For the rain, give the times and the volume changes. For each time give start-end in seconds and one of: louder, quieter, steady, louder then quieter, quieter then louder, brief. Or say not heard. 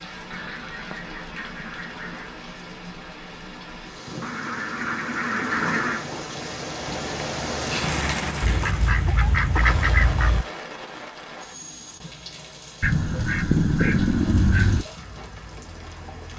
0.0-16.3 louder then quieter.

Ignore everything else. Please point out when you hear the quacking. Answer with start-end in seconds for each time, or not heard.
0.3-2.4, 4.2-6.1, 8.4-10.4, 12.8-14.8.